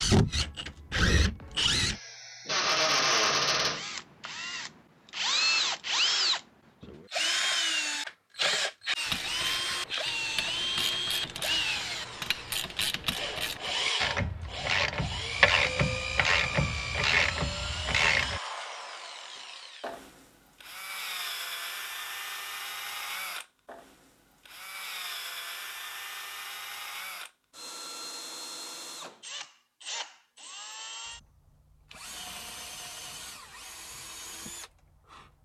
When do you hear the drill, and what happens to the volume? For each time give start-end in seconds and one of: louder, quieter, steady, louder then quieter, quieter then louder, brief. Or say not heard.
0.0-35.4 quieter.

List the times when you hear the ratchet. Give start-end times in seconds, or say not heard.
9.1-18.4.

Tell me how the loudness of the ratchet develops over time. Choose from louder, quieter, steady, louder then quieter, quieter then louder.
louder.